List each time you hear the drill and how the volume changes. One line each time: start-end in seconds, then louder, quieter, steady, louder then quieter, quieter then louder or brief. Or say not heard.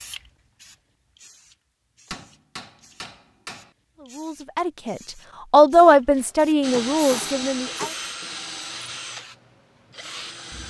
6.6-10.6 quieter.